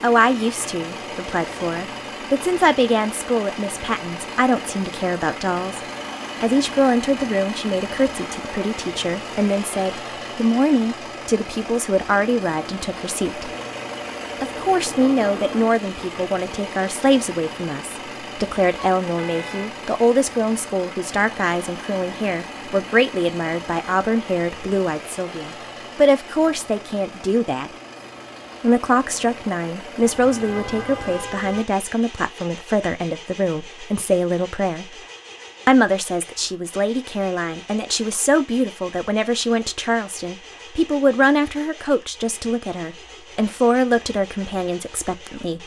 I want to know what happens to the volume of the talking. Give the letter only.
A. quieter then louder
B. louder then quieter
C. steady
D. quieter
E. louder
C.